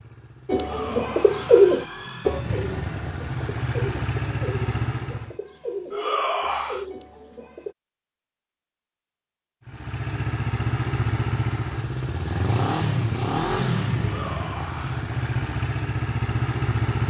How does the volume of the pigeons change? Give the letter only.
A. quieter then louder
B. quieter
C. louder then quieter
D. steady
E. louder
B.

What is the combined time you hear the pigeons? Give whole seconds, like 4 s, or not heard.
7 s.